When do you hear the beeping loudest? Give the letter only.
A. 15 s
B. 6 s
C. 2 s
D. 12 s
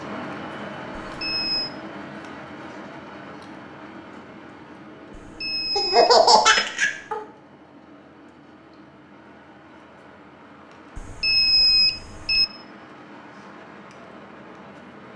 D.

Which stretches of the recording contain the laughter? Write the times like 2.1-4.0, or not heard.
5.8-7.2.